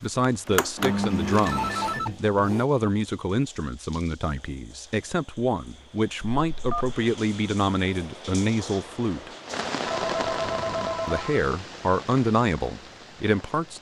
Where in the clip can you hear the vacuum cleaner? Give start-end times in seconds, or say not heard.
0.5-2.7.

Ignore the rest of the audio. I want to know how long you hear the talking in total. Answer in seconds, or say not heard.
12 s.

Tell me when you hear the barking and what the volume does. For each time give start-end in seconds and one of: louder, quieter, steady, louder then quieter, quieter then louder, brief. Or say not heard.
not heard.